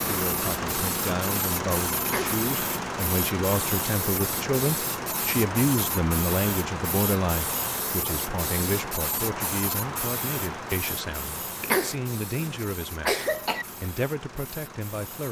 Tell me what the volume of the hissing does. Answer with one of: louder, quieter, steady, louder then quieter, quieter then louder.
quieter.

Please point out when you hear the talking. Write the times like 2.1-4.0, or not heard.
0.0-15.2.